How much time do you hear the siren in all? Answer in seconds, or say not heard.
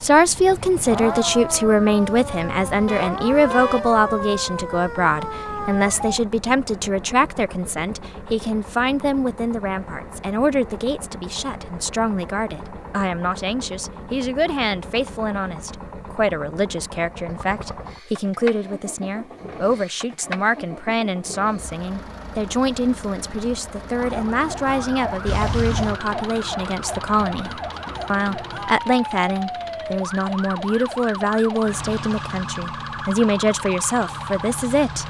17 s.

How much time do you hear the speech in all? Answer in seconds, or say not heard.
35 s.